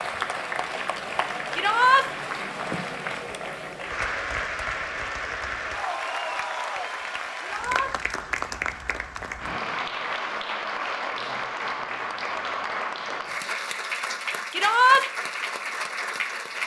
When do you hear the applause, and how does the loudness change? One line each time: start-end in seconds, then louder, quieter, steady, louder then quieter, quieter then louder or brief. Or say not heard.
0.0-16.6 steady.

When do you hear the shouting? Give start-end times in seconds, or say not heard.
1.5-2.0, 7.4-7.9, 14.5-15.1.